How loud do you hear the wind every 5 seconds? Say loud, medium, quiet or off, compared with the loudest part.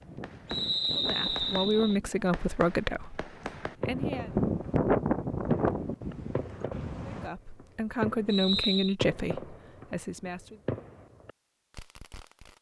loud, loud, off.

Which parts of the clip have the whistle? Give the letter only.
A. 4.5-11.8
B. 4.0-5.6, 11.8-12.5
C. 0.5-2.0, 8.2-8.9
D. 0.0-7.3
C.